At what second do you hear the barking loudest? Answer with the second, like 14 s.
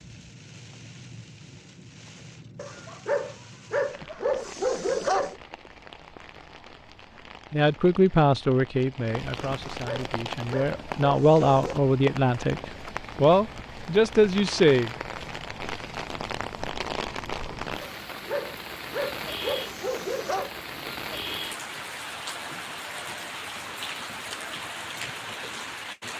5 s.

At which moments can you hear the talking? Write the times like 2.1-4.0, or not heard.
7.5-14.9.